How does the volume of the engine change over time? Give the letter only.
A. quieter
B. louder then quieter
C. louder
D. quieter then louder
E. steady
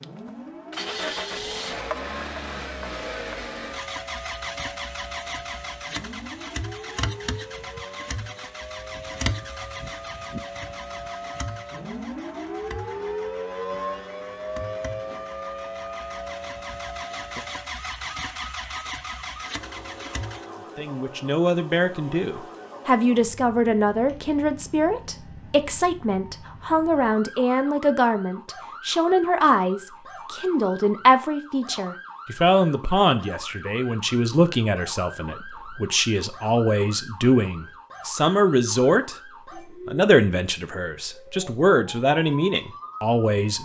D.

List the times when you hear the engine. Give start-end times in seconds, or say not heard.
0.0-20.4.